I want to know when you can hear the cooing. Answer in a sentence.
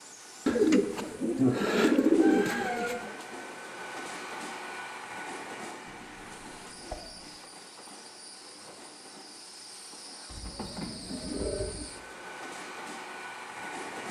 The cooing can be heard from 0.5 to 3.1 s, from 5.8 to 7.3 s and from 10.3 to 11.8 s.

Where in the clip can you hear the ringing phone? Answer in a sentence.
You can't hear the ringing phone here.